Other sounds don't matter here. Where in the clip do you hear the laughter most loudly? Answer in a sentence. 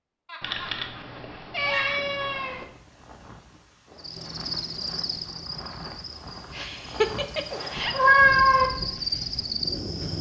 The volume of the laughter peaks at 7 seconds.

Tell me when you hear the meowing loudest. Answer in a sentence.
The volume of the meowing peaks at 8 seconds.